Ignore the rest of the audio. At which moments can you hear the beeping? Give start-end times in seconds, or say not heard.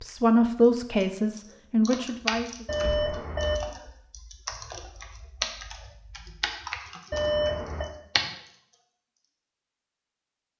2.6-3.6, 7.1-7.9.